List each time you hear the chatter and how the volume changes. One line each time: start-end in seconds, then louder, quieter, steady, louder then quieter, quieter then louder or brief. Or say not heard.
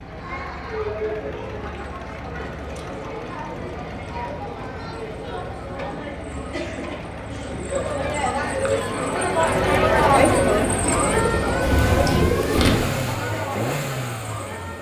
0.0-14.7 louder then quieter.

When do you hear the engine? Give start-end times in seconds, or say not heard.
0.0-14.7.